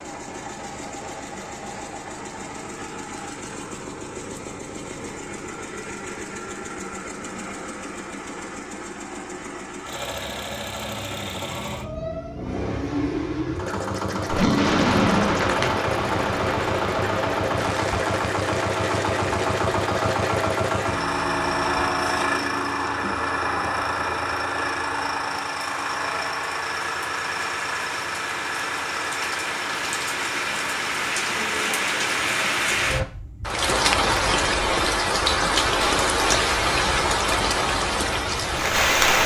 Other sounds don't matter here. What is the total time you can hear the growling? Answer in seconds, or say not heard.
2 s.